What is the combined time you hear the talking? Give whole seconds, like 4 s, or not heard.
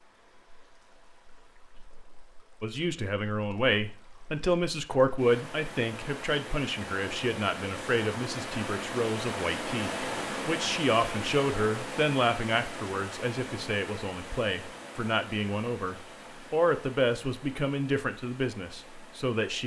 17 s.